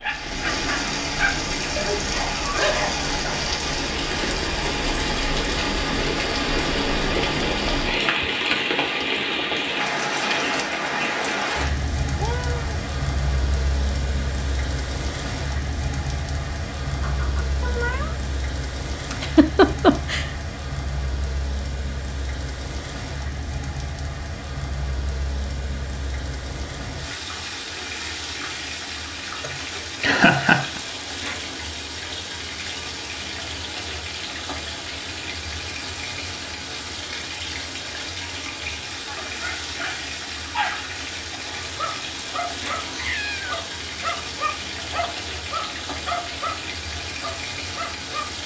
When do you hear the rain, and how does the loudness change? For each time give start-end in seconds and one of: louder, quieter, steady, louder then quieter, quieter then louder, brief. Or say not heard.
0.0-48.4 quieter.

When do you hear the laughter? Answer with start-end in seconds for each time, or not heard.
19.1-20.3, 29.4-30.8.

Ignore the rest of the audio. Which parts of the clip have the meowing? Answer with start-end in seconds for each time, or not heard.
12.2-12.8, 17.0-18.2, 42.8-43.5.